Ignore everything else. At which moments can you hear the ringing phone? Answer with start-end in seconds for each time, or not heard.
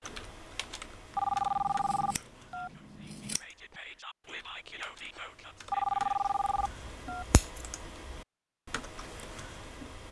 1.1-2.8, 5.7-7.3.